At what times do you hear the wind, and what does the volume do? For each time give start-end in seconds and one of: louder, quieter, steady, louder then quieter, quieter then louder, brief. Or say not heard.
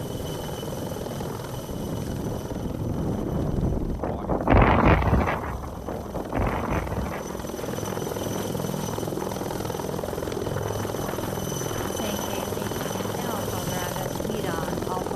0.0-14.9 louder then quieter.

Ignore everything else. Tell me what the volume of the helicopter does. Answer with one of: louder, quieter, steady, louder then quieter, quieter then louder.
quieter then louder.